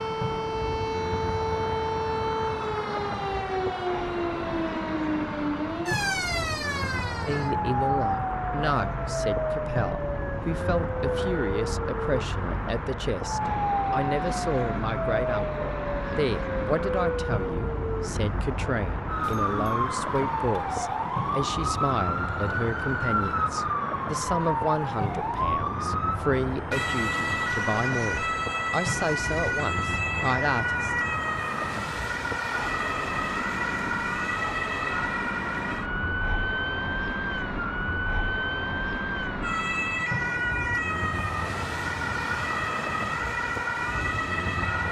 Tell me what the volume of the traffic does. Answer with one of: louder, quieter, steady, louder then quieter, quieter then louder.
steady.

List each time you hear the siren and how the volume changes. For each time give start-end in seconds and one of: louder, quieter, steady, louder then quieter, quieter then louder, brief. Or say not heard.
0.0-44.8 steady.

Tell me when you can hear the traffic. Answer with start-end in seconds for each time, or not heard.
0.0-44.8.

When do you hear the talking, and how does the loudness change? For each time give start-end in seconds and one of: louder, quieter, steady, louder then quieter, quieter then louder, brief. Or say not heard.
7.2-30.9 steady.